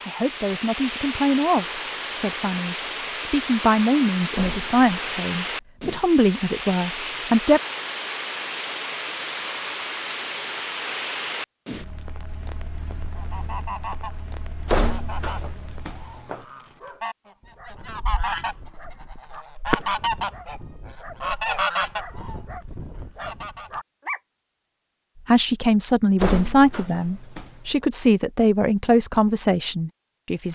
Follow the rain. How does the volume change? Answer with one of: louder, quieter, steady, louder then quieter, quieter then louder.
quieter.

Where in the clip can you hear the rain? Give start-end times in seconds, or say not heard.
0.0-16.1.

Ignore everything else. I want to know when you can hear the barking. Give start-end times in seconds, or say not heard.
16.8-24.2.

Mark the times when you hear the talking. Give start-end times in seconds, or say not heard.
0.0-7.6, 25.2-30.5.